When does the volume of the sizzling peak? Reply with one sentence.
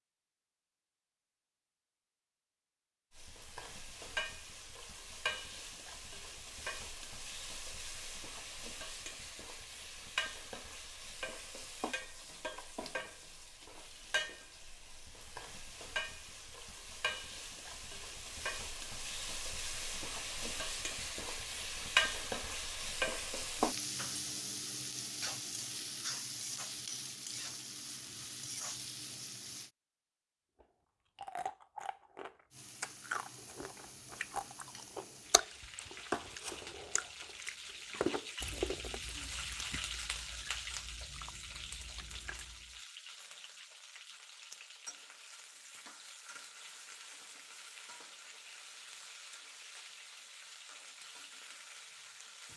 The volume of the sizzling peaks at 22 seconds.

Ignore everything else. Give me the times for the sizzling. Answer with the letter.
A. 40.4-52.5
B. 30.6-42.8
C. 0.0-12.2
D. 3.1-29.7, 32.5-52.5
D.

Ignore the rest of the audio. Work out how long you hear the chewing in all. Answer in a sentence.
You can hear the chewing for 12 seconds altogether.